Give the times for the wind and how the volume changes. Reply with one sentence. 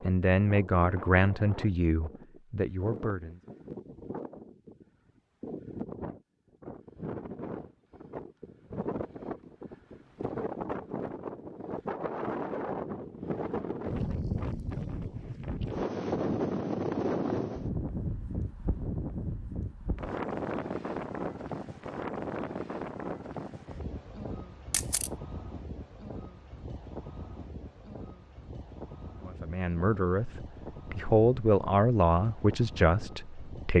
The wind can be heard from 0.0 to 33.7 s, getting louder then quieter.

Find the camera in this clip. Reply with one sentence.
The camera can be heard from 24.7 to 25.1 s.